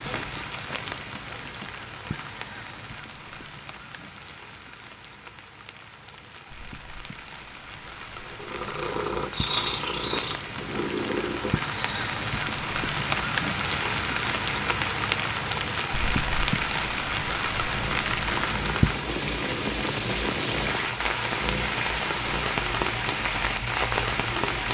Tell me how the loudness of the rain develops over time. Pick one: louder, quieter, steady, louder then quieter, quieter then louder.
louder.